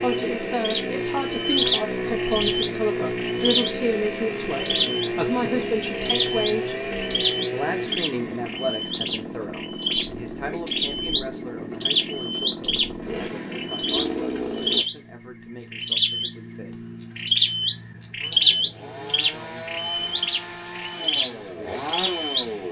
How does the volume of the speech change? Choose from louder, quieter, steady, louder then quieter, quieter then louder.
quieter.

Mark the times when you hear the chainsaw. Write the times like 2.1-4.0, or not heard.
0.0-14.8, 18.2-22.6.